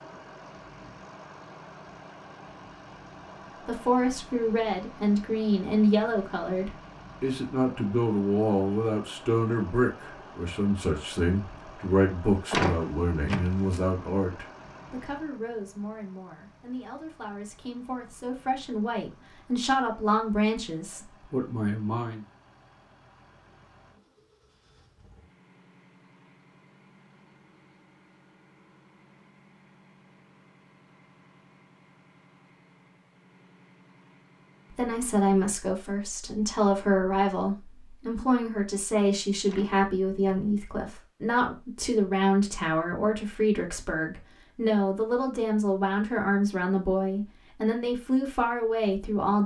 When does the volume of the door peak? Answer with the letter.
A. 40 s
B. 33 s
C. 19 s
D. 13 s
D.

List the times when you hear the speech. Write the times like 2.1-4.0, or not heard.
3.6-22.2, 34.8-49.4.